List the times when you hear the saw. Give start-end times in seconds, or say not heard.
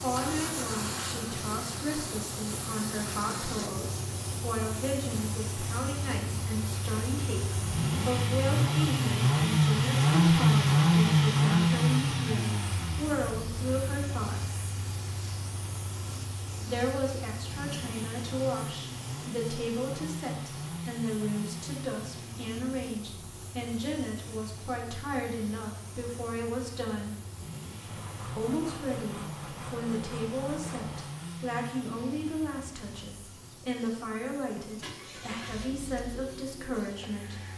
27.8-31.1.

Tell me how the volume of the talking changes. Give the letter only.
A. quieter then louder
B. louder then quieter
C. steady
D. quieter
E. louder
C.